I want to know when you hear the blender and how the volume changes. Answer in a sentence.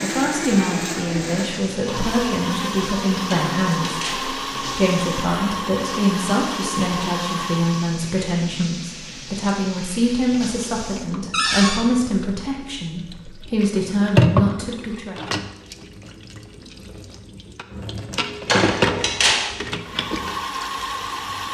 The blender can be heard from 0.0 to 8.0 s, at a steady volume; and briefly from 19.8 to 21.4 s.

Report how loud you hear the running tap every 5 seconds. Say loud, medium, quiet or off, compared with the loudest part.
medium, medium, loud, loud, medium.